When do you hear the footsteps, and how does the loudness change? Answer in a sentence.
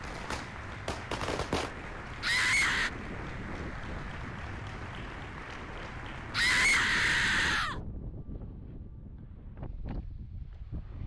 The footsteps can't be heard in this clip.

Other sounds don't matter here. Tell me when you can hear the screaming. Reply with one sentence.
You can hear the screaming from 2.2 to 2.9 s and from 6.3 to 7.8 s.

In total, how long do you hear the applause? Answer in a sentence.
You can hear the applause for 7 seconds altogether.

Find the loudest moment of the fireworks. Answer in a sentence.
The loudest moment of the fireworks is at 1 second.